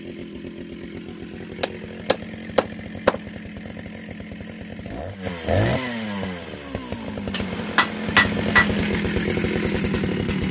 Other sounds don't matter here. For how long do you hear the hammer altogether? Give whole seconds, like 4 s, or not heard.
3 s.